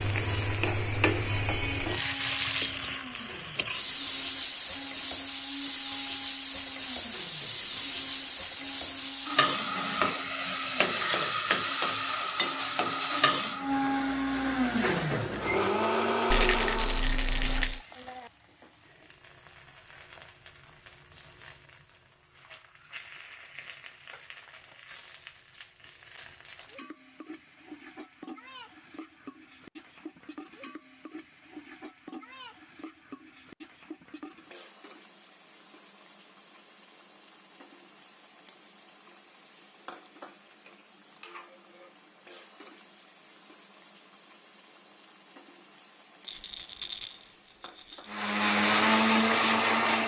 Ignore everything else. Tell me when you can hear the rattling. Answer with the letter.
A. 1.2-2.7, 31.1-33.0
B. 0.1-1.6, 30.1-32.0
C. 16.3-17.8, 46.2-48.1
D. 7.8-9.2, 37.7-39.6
C.